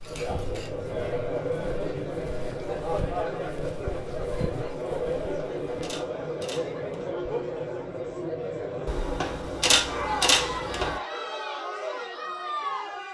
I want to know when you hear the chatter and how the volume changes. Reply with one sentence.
You can hear the chatter from 0.0 to 13.0 s, at a steady volume.